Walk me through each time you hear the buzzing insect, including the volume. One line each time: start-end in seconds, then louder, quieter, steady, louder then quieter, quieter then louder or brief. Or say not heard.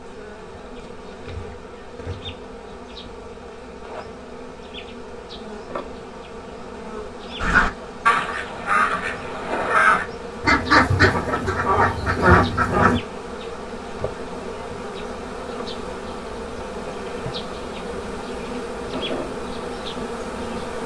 0.0-20.8 louder.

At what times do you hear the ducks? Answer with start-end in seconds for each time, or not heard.
7.4-13.0.